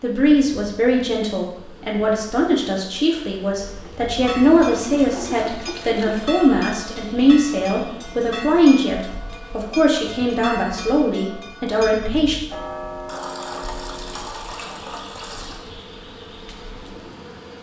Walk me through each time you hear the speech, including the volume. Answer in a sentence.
The speech can be heard from 0.0 to 12.4 s, at a steady volume.